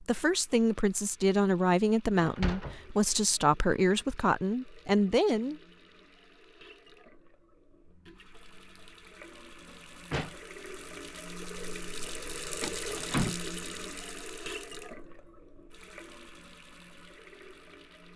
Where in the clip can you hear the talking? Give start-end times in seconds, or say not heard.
0.0-5.6.